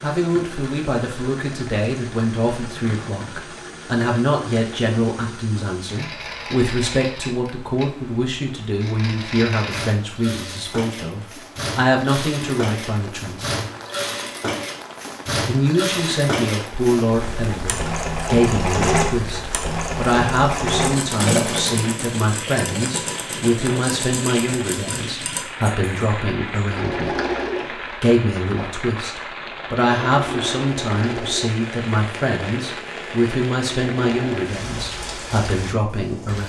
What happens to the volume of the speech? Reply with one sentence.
The loudness of the speech stays about the same.